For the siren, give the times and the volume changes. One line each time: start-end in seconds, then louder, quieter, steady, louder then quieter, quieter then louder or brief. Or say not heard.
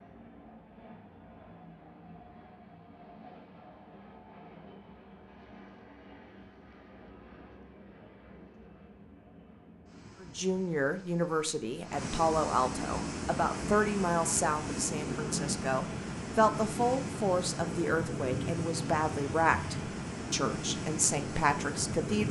not heard.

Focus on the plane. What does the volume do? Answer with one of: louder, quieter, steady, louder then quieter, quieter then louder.
louder.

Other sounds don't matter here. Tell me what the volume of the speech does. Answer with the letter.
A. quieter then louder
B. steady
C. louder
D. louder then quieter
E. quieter
B.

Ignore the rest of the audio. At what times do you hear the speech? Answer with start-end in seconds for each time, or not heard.
10.2-22.2.